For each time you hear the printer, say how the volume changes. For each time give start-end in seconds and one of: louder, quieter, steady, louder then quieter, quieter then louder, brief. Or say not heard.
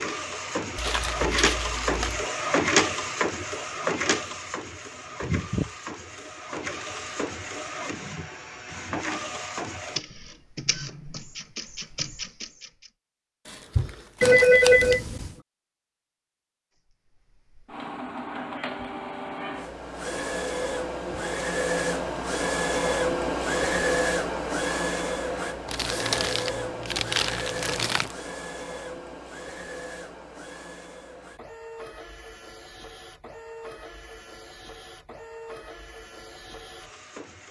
0.0-12.9 quieter
16.9-37.4 louder then quieter.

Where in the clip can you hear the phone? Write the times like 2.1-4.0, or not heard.
14.2-15.3.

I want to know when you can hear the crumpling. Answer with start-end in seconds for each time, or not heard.
0.8-2.3, 13.4-14.9, 25.6-28.1.